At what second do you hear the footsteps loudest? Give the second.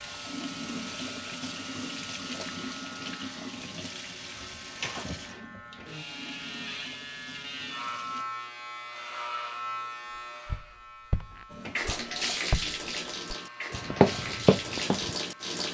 14 s.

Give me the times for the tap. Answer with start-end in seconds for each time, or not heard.
0.0-8.2, 11.5-15.6.